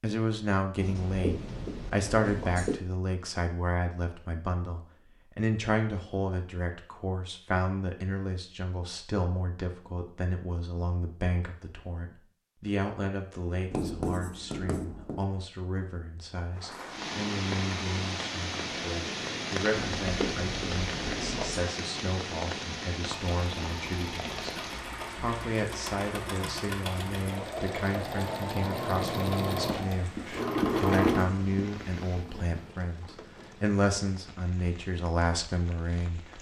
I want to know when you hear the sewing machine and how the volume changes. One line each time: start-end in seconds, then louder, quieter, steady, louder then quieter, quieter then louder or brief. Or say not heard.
23.1-32.7 louder.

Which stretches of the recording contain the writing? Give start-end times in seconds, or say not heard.
0.8-2.8, 13.7-15.2, 19.7-21.6, 29.6-31.6.